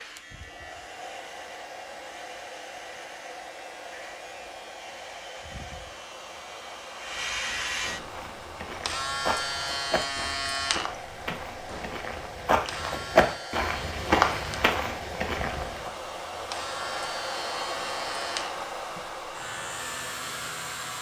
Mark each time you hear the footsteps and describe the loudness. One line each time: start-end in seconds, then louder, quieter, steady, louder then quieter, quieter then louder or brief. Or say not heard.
8.1-15.9 louder.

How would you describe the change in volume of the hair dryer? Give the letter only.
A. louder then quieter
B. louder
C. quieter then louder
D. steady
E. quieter
B.